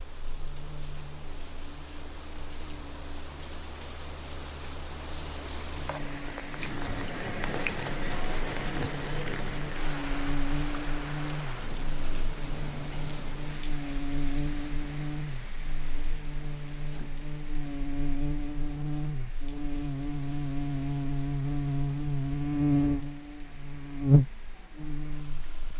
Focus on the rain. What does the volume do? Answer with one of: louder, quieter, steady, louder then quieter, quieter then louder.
louder then quieter.